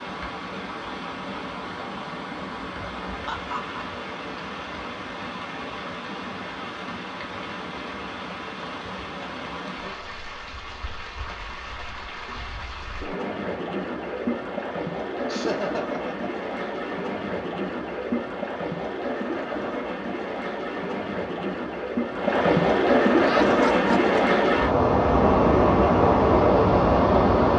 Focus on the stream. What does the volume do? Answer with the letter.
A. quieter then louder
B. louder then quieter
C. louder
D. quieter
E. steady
C.